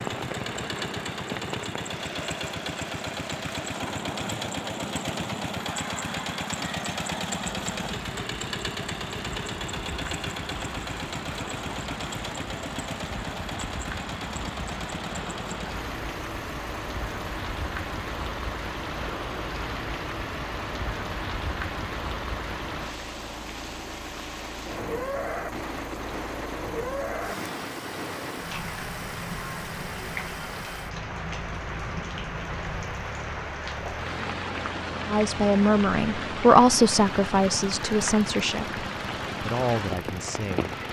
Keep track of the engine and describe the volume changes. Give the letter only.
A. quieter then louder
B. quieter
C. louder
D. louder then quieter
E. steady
B.